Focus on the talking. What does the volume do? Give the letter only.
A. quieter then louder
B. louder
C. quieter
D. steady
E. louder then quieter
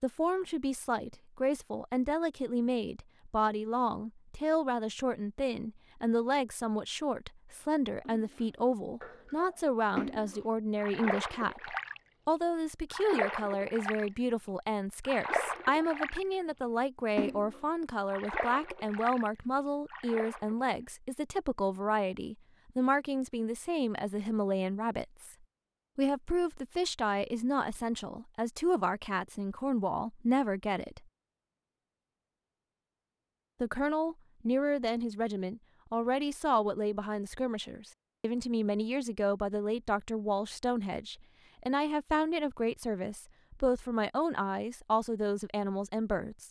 D.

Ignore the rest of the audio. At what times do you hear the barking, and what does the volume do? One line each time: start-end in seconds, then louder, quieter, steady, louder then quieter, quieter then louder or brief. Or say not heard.
not heard.